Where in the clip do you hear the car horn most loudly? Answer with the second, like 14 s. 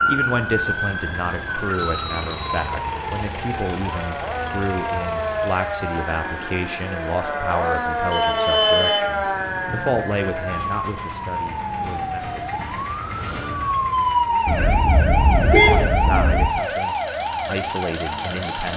16 s.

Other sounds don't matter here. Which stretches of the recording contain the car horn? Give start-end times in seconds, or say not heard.
1.9-2.6, 8.1-10.0, 14.4-16.4.